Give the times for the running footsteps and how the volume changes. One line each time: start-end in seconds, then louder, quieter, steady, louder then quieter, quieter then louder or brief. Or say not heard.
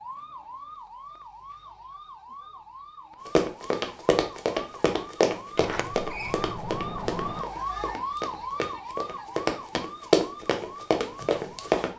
3.2-11.9 quieter then louder.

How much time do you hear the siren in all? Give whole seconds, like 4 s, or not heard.
12 s.